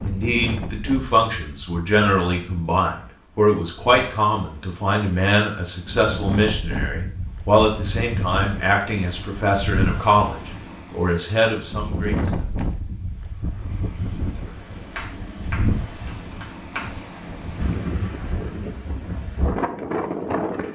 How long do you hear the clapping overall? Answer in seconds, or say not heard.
2 s.